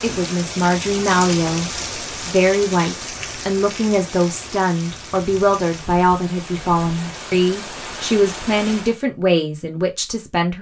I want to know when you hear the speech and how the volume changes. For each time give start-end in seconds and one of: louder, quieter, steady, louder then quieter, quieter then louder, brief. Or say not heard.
0.0-10.5 steady.